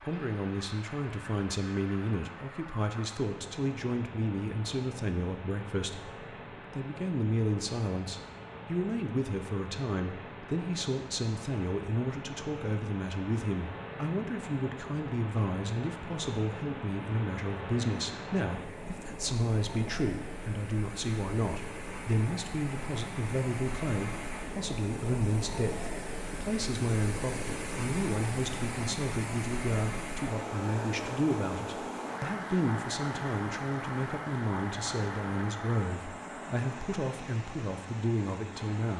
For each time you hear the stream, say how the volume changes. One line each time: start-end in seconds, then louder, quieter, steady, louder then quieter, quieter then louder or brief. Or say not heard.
0.0-38.9 louder.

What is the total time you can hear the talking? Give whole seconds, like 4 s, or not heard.
39 s.